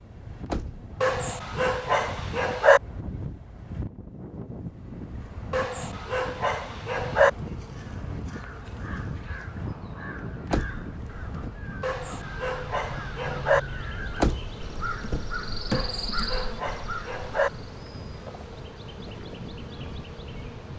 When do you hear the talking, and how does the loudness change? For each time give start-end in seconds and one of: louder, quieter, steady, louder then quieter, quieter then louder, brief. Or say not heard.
not heard.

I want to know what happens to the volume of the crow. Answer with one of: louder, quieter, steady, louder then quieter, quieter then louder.
louder.